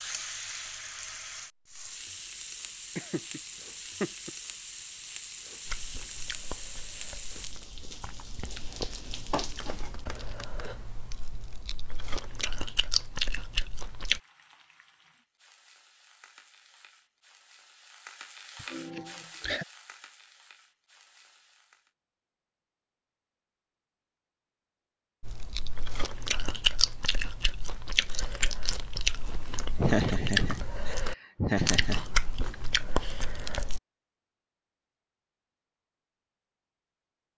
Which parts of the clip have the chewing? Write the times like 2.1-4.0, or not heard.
5.7-14.2, 25.2-33.8.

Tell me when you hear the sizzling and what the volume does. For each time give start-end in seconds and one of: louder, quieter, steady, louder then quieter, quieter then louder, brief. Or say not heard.
0.0-10.0 steady
14.0-21.9 louder then quieter.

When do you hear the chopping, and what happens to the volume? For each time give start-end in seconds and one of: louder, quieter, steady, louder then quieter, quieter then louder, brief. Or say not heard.
not heard.